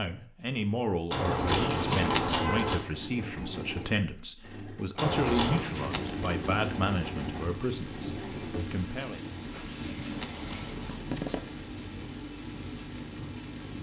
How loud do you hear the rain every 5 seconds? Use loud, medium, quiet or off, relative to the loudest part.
off, loud, loud.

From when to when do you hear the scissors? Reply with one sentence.
The scissors can be heard from 1.1 to 2.8 s, from 5.0 to 5.6 s and from 10.1 to 11.1 s.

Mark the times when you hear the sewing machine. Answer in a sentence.
The sewing machine can be heard from 2.8 to 10.8 s.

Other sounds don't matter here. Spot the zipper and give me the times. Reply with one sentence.
You can hear the zipper from 1.4 to 2.4 s, from 5.5 to 6.8 s and from 9.5 to 11.5 s.